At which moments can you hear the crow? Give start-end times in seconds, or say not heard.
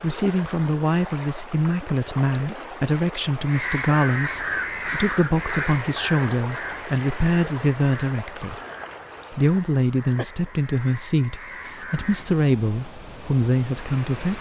3.4-12.3.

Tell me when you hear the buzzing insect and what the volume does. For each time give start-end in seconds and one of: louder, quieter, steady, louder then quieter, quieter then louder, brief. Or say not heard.
not heard.